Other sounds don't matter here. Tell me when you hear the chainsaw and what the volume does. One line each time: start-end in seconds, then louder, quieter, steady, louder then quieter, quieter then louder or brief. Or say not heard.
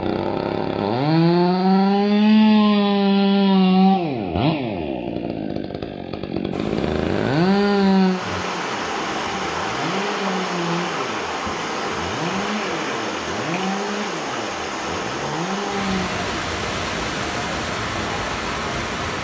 0.0-19.1 quieter.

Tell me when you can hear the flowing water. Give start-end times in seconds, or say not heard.
6.5-19.1.